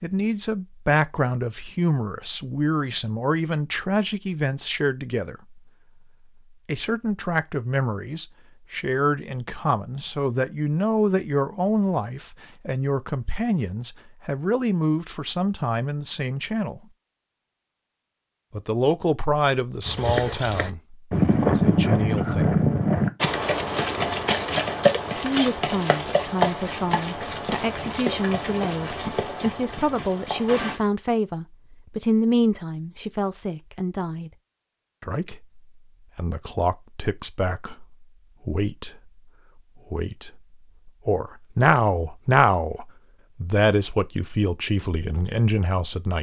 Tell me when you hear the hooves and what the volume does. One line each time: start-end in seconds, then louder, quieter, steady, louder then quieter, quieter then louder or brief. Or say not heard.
19.9-30.8 quieter.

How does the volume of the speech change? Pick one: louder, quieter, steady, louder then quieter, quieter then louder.
steady.